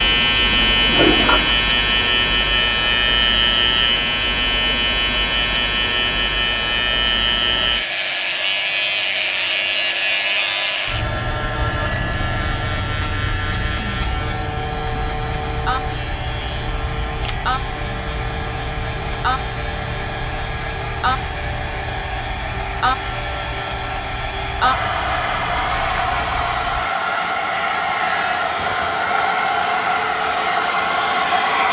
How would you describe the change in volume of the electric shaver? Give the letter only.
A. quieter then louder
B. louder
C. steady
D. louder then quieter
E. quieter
E.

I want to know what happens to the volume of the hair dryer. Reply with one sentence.
The volume of the hair dryer goes up.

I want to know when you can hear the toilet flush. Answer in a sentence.
You can hear the toilet flush from 0.5 to 1.6 s.